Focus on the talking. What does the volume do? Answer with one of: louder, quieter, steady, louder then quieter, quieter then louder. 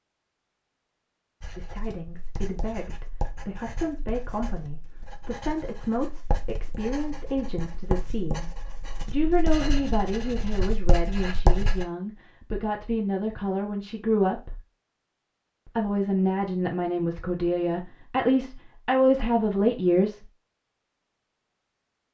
louder.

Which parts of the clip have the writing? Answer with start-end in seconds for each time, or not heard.
1.4-11.8.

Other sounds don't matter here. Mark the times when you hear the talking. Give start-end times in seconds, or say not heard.
1.6-14.6, 15.8-20.2.